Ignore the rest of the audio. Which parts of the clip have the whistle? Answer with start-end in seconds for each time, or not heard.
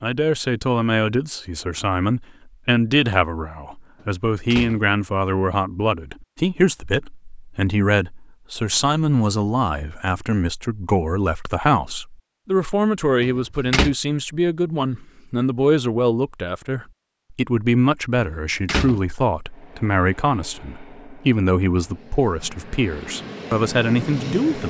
not heard.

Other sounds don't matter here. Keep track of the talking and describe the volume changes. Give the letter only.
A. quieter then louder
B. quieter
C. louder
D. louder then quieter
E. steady
E.